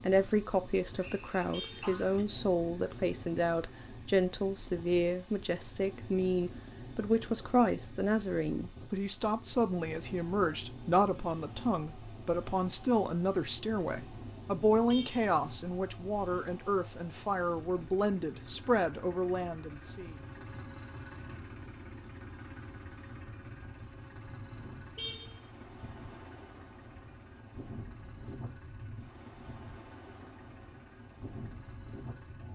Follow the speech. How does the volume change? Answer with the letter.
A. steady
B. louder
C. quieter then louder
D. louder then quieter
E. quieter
A.